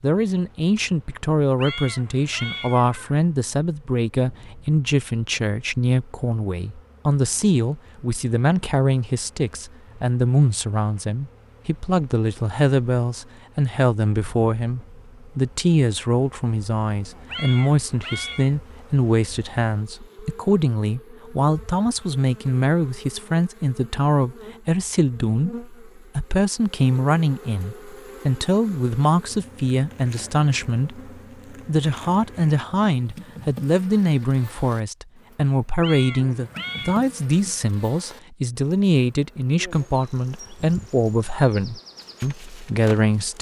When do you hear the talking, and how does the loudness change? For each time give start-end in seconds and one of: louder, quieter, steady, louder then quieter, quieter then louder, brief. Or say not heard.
0.0-43.3 steady.